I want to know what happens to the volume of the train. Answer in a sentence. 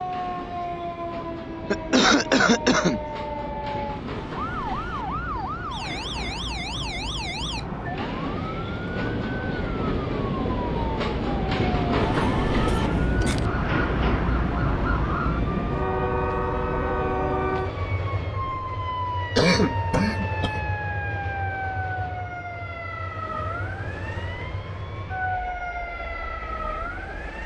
The loudness of the train goes up, then down.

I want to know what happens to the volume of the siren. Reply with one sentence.
The volume of the siren stays about the same.